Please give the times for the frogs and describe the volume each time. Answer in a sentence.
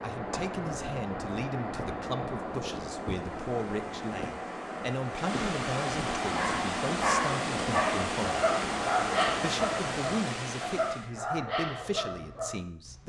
You can't hear the frogs here.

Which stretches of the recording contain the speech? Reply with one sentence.
The speech can be heard from 0.0 to 8.4 s and from 9.4 to 13.0 s.